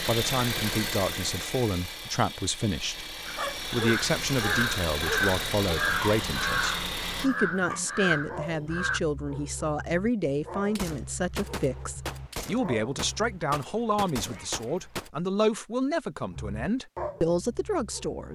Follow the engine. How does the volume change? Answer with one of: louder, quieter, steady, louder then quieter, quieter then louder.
quieter then louder.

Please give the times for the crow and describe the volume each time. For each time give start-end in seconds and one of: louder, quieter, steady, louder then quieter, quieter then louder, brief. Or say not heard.
3.2-9.0 steady.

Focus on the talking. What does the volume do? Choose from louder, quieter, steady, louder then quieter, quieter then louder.
steady.